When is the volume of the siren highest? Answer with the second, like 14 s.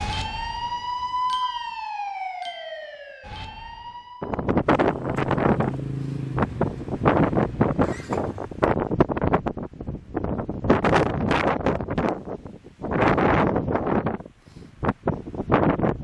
1 s.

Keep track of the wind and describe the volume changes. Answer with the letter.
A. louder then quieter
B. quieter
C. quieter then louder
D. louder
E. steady
E.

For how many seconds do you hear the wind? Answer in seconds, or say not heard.
12 s.